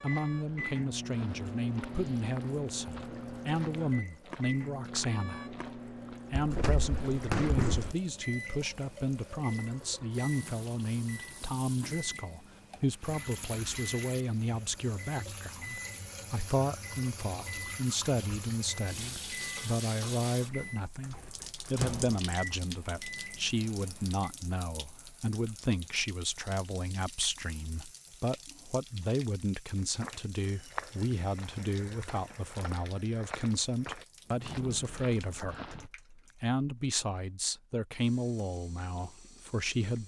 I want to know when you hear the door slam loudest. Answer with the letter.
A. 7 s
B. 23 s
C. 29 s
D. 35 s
A.